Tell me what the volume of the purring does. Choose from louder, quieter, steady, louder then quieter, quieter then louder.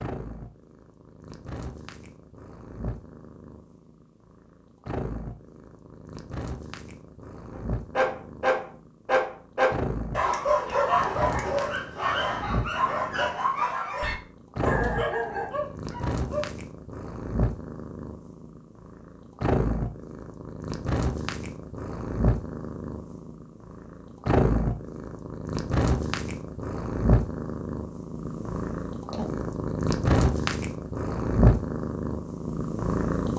louder.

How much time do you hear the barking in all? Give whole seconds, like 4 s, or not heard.
9 s.